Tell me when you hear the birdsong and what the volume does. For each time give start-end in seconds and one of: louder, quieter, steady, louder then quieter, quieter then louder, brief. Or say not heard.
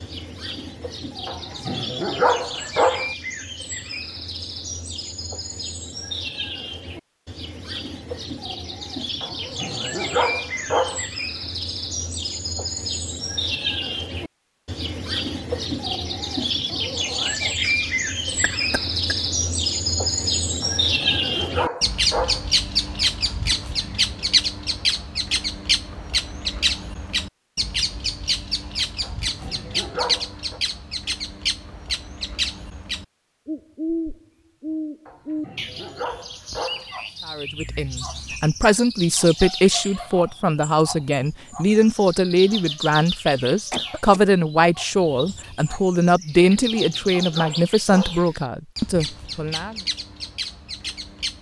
0.0-51.3 louder then quieter.